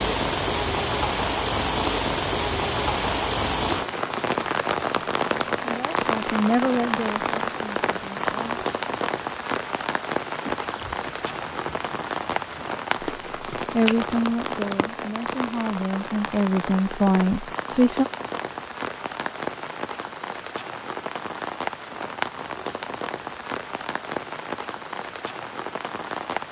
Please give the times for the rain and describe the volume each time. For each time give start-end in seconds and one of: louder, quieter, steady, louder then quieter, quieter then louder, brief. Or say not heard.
0.0-26.4 quieter.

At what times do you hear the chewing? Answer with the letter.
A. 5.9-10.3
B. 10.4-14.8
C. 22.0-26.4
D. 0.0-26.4
B.